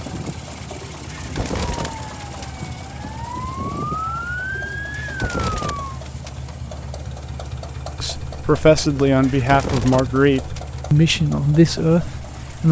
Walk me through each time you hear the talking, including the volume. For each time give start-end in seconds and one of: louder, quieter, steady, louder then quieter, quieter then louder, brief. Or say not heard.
8.0-12.6 steady.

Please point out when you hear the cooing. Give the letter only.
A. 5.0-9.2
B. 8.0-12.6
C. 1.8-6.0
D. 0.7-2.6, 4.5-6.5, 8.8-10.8
D.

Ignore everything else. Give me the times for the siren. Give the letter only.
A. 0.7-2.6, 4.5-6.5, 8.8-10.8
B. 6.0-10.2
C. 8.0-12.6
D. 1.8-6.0
D.